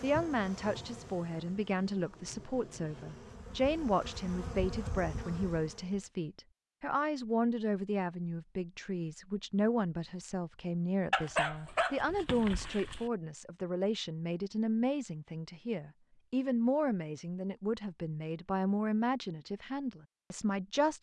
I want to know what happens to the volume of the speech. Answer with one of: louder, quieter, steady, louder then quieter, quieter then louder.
steady.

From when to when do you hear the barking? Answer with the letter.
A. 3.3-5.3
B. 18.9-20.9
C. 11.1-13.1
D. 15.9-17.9
C.